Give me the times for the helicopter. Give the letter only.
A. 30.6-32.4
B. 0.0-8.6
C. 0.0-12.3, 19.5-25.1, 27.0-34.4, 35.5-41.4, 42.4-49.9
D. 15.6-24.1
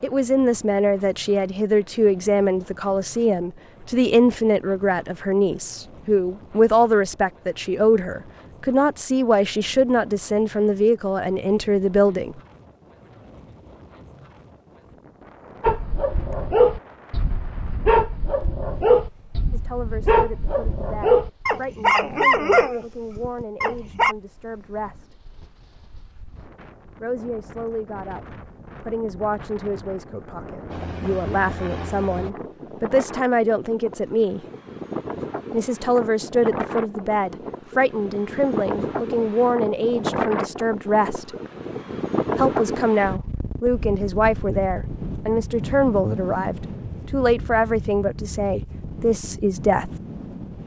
A.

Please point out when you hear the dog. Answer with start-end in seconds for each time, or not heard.
15.6-24.1.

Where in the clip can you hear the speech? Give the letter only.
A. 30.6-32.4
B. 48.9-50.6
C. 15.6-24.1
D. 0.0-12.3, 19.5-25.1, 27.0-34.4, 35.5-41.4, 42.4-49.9
D.